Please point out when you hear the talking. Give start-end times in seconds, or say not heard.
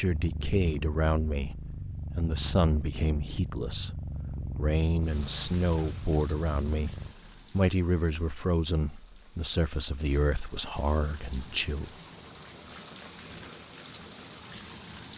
0.0-11.9.